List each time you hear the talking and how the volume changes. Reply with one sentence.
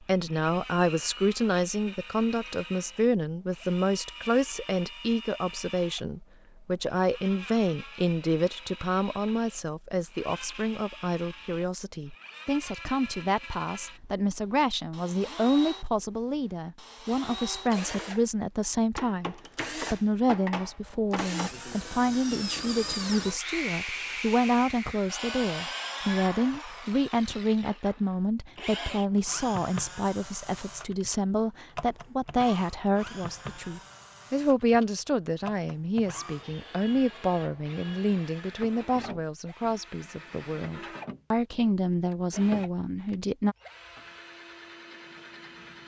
You can hear the talking from 0.0 to 43.5 s, at a steady volume.